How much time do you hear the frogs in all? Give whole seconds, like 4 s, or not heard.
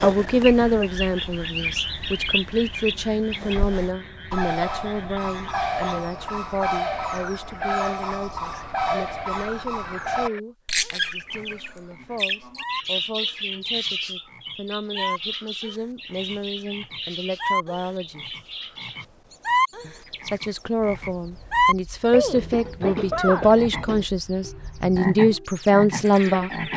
27 s.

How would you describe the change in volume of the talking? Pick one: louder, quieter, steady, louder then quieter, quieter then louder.
quieter then louder.